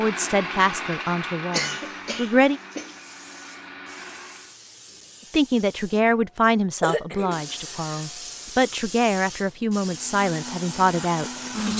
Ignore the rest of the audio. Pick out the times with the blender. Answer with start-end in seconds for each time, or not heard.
0.0-4.5, 9.8-11.7.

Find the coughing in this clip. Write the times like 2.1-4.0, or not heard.
1.5-3.0, 6.8-8.1.